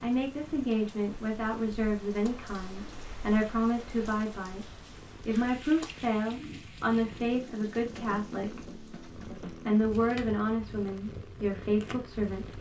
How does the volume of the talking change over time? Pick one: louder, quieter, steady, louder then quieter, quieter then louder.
steady.